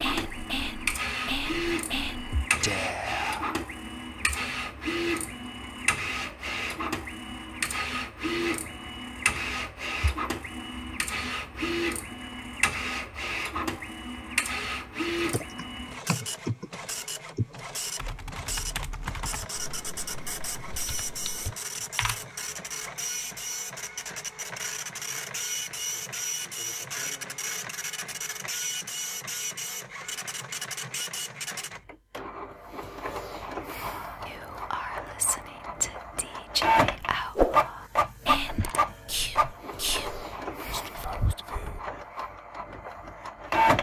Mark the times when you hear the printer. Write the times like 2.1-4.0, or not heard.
0.0-43.7.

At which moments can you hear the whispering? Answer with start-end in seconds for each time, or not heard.
0.0-3.6, 33.7-41.9.